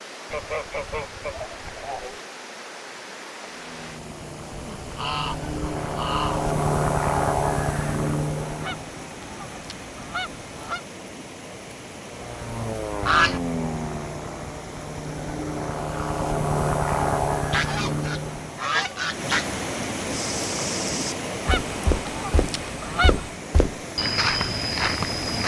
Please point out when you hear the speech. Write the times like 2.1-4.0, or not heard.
not heard.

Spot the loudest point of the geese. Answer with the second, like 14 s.
13 s.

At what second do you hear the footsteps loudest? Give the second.
24 s.